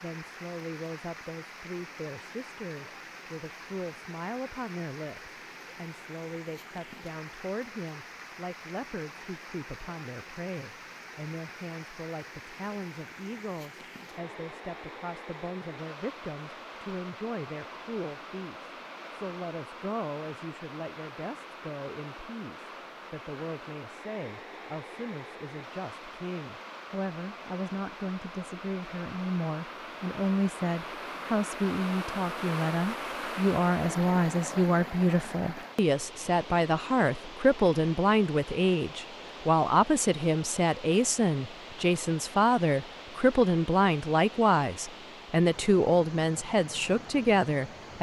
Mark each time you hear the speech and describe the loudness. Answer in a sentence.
You can hear the speech from 0.0 to 47.9 s, getting louder.